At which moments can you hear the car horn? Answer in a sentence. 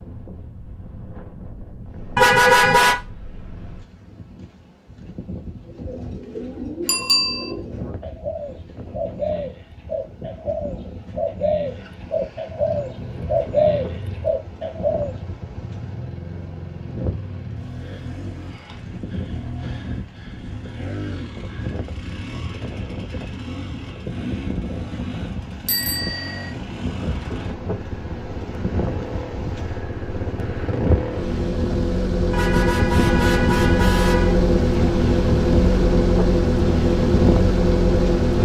The car horn can be heard from 2.1 to 3.0 s and from 32.3 to 34.4 s.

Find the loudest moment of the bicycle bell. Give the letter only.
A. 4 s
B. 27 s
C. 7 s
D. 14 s
C.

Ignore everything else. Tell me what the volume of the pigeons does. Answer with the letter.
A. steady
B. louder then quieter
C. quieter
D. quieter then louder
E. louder
E.